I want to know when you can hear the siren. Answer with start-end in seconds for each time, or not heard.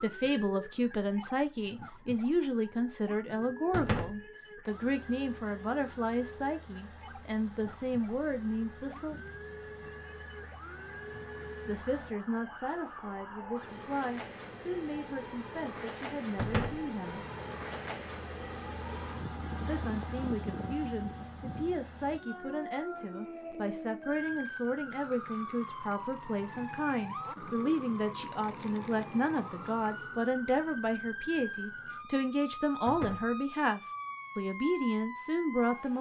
0.0-35.9.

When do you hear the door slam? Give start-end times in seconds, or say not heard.
3.7-4.2, 16.4-16.9, 32.9-33.4.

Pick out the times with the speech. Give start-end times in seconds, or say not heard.
0.0-9.2, 11.7-17.2, 19.6-35.9.